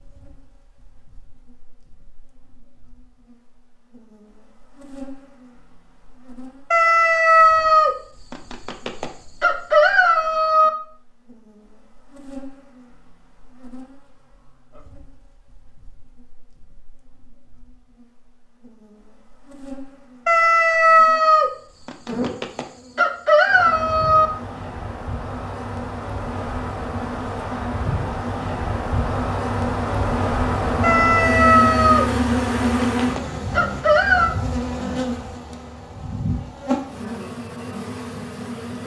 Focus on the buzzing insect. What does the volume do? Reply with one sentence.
The volume of the buzzing insect goes up.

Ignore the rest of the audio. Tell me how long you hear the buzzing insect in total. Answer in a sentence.
The buzzing insect can be heard for 39 seconds in total.